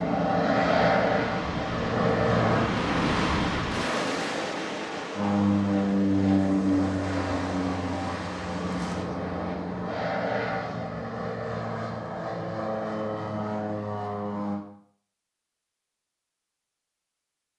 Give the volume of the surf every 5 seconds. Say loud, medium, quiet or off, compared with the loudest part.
loud, medium, off, off.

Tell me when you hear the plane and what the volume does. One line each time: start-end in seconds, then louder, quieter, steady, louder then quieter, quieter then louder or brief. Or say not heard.
0.0-2.7 brief
5.1-14.7 quieter.